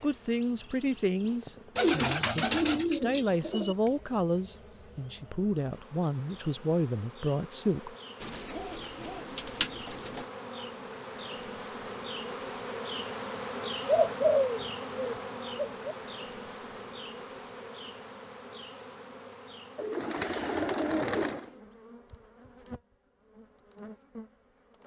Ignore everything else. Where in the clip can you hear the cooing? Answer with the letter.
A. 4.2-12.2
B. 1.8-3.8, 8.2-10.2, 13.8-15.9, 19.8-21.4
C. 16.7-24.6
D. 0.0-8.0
B.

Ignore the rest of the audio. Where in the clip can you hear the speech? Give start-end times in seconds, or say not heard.
0.0-8.0.